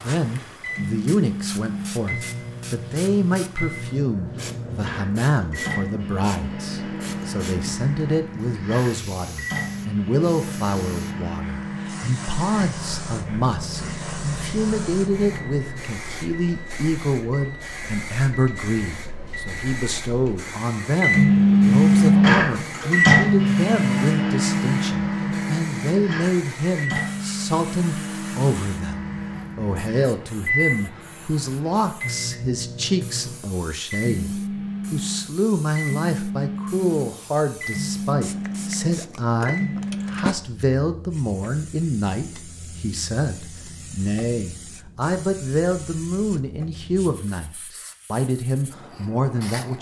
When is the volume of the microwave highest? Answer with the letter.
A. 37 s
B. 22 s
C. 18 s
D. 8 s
B.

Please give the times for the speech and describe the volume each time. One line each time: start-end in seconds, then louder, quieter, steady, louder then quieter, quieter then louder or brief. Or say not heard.
0.0-49.7 steady.